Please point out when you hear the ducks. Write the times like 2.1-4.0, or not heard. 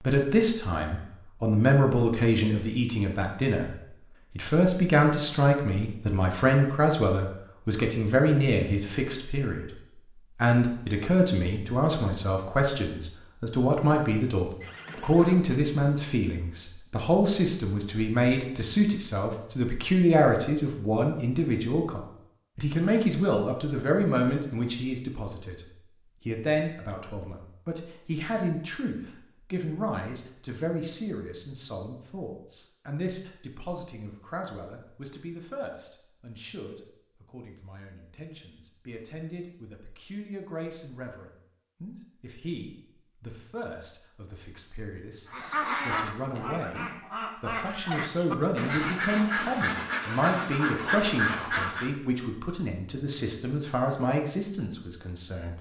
45.3-51.9.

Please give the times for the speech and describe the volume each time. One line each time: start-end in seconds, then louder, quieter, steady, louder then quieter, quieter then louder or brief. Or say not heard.
0.0-55.5 quieter then louder.